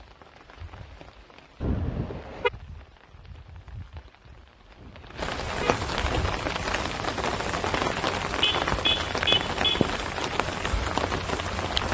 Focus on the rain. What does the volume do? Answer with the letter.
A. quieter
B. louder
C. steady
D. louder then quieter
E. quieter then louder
B.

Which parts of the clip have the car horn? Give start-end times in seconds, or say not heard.
1.6-2.5, 4.8-5.8, 8.4-9.9.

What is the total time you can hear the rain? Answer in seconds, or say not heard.
12 s.